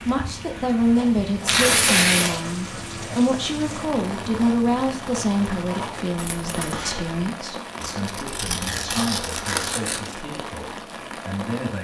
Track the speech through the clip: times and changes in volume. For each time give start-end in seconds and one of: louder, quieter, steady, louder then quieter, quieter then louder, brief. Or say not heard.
0.1-11.7 quieter.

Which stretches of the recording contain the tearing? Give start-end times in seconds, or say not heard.
1.4-2.3, 7.8-10.2.